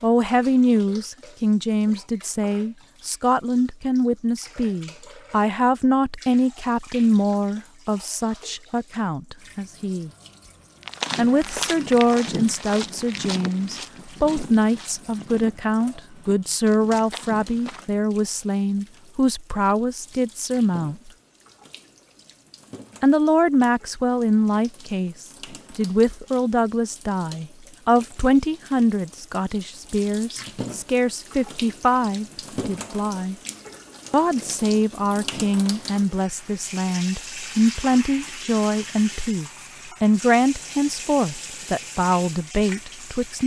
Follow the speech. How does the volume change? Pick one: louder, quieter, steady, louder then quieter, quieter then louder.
steady.